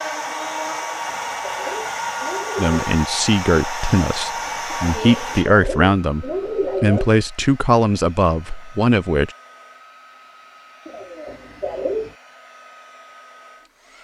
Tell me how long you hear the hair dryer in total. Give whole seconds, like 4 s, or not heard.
14 s.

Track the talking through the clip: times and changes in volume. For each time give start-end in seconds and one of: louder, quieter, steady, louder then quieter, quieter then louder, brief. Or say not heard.
2.5-9.3 steady.